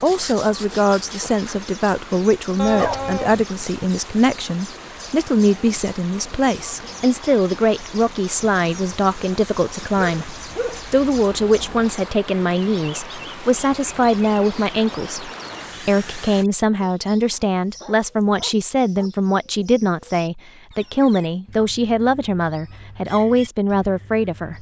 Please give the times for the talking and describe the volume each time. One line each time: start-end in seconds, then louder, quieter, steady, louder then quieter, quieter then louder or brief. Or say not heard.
0.0-24.5 steady.